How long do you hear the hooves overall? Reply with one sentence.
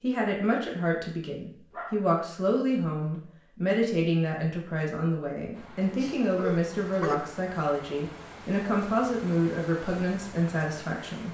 The hooves can't be heard in this clip.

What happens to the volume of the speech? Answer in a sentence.
The loudness of the speech stays about the same.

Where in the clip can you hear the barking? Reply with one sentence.
You can hear the barking from 1.7 to 2.1 s and from 5.8 to 7.2 s.